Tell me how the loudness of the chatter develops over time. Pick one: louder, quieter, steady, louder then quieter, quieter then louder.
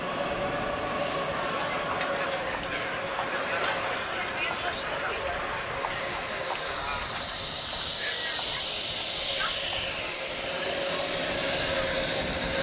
quieter.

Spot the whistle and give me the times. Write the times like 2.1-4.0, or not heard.
not heard.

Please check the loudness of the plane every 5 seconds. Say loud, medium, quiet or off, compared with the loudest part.
medium, loud, loud.